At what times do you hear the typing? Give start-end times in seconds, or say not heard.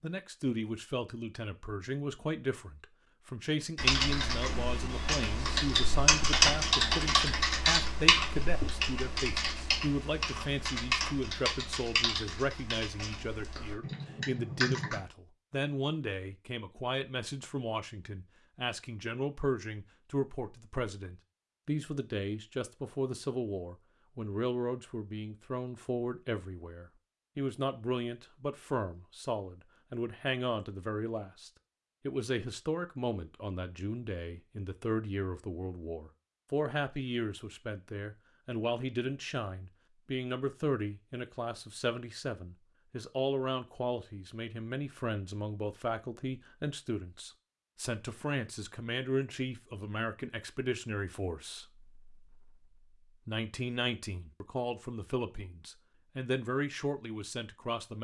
3.8-15.0.